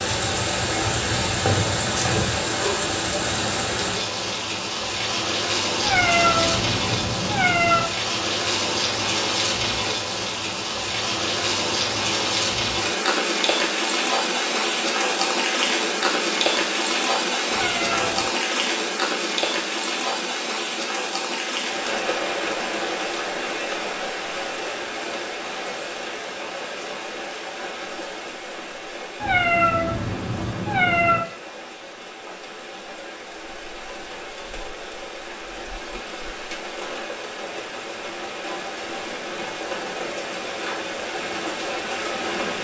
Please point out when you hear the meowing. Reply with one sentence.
The meowing can be heard from 5.8 to 7.8 s, from 17.4 to 18.3 s and from 29.2 to 31.2 s.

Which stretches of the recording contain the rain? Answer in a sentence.
The rain can be heard from 0.0 to 42.5 s.